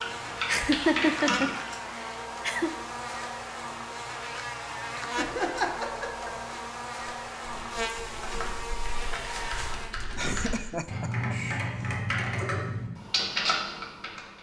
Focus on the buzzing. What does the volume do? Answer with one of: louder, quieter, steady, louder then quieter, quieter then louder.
steady.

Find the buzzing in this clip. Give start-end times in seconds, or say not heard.
0.0-9.9.